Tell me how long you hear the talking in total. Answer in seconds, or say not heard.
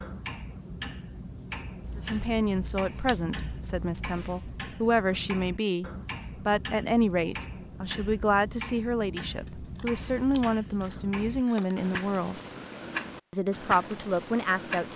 12 s.